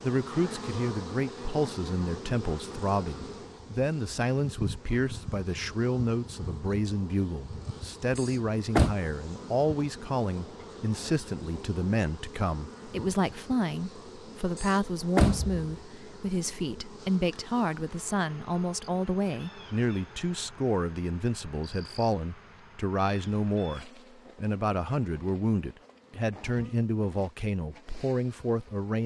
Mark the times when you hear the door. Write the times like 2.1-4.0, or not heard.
8.2-8.9, 14.6-15.7.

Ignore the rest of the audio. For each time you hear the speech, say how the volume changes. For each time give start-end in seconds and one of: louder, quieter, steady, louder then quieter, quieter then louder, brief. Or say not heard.
0.0-29.0 steady.